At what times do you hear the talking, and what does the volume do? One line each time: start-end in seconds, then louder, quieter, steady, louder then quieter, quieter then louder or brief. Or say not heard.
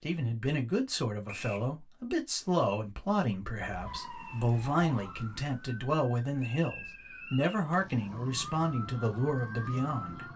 0.0-10.3 steady.